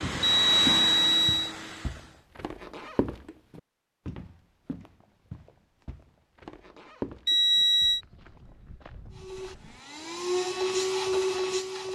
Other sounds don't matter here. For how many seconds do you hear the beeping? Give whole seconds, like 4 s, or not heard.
2 s.